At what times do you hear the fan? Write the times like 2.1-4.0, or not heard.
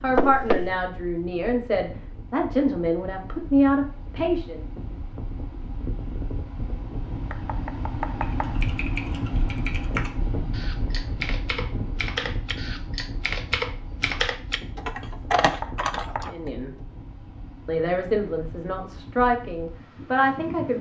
0.0-20.7.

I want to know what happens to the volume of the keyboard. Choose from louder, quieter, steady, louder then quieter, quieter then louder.
louder.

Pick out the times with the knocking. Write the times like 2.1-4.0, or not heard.
0.1-0.8, 7.3-8.6, 15.4-16.2.